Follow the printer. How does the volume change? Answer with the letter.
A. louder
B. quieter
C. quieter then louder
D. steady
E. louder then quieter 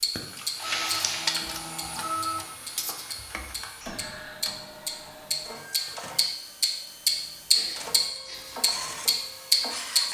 C.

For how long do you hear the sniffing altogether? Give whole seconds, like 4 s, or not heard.
3 s.